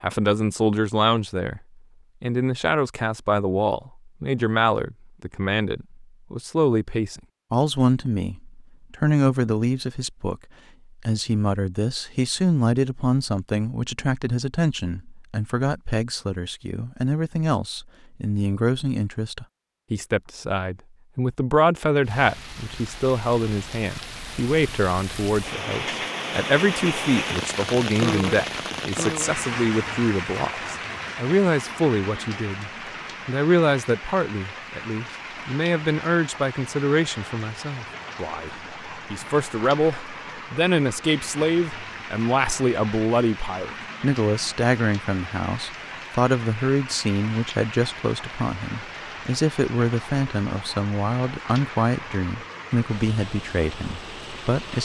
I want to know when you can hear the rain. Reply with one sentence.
You can hear the rain from 22.0 to 54.7 s.